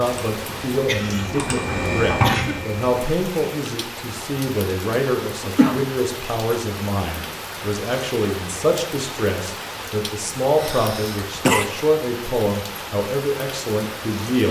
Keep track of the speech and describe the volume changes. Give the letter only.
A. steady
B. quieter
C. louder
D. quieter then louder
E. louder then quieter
A.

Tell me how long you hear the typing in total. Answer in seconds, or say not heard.
3 s.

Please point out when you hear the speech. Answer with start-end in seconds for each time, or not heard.
0.0-14.4.